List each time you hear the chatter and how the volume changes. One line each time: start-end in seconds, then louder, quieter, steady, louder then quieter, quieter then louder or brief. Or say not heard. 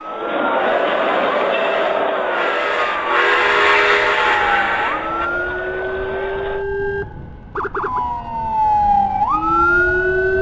0.0-6.7 quieter.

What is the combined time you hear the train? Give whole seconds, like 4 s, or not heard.
5 s.